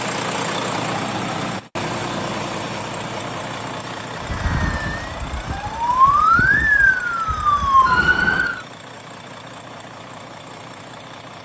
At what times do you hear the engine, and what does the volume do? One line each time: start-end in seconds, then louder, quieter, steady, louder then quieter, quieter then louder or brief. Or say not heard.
0.0-11.4 quieter.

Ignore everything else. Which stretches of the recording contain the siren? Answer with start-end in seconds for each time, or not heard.
4.2-8.7.